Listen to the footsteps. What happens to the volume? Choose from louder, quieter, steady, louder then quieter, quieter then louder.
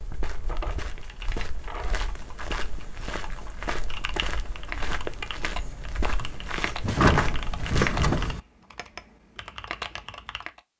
louder.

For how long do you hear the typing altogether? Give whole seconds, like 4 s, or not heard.
10 s.